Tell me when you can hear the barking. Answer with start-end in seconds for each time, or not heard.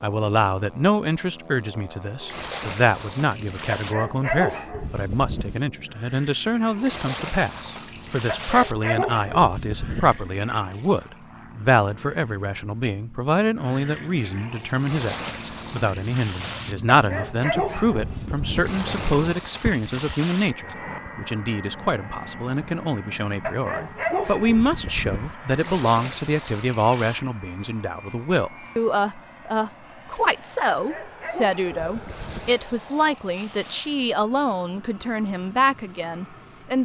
3.7-5.6, 8.2-10.2, 16.9-18.8, 23.4-25.4, 30.7-32.6.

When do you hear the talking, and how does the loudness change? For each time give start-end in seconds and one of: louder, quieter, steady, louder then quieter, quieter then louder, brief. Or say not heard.
0.0-36.8 steady.